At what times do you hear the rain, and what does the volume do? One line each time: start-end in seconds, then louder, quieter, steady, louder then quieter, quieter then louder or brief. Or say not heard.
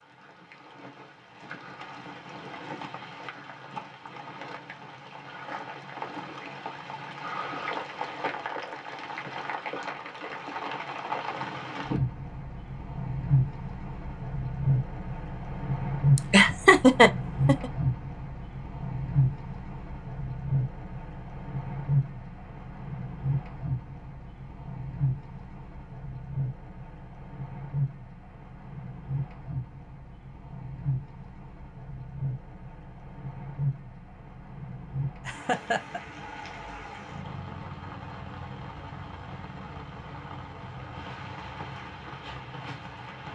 0.0-43.2 louder then quieter.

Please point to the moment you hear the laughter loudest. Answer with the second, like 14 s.
17 s.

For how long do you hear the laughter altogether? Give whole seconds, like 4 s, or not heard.
2 s.